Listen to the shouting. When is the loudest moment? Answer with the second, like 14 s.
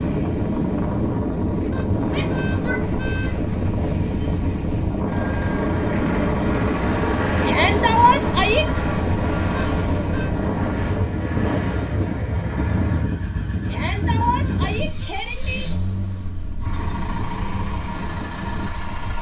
8 s.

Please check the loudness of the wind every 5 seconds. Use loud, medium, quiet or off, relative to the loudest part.
loud, loud, loud, quiet.